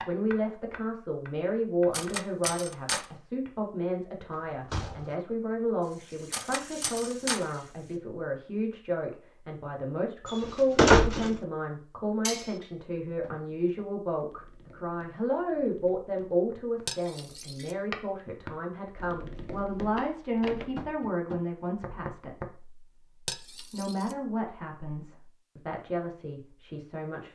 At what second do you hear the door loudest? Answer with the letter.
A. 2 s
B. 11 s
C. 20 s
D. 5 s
B.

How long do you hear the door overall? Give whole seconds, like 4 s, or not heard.
4 s.